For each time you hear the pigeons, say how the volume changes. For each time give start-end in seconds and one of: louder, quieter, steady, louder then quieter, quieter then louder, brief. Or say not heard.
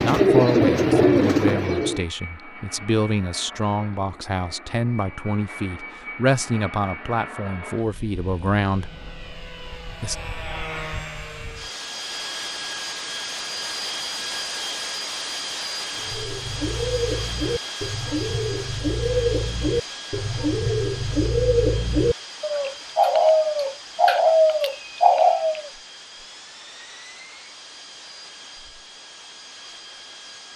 0.0-2.0 brief
15.9-25.7 louder.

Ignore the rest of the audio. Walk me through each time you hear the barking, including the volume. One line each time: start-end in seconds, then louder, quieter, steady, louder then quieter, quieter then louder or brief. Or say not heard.
not heard.